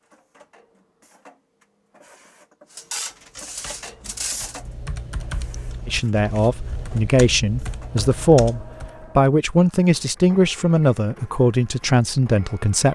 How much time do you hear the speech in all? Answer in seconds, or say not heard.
7 s.